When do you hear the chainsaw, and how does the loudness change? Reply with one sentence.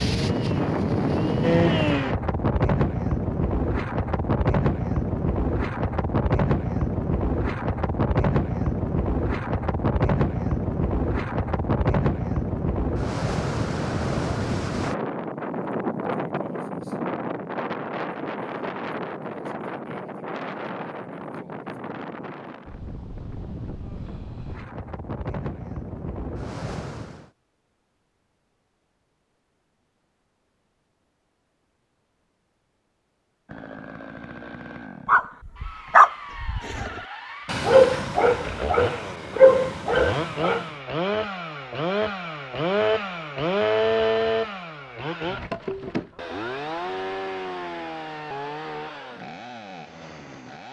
You can hear the chainsaw briefly from 0.0 to 2.1 s; and from 33.5 to 50.6 s, getting louder then quieter.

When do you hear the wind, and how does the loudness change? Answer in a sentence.
You can hear the wind from 0.0 to 27.3 s, getting quieter.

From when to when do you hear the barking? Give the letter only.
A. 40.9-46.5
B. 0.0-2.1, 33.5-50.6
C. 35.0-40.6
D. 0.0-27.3
C.